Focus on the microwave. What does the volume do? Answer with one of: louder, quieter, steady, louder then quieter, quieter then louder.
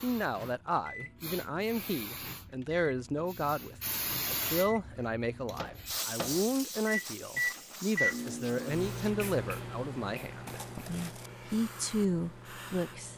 louder then quieter.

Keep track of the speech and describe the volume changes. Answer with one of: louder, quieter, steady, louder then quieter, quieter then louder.
steady.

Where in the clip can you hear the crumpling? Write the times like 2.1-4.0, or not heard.
10.4-11.3.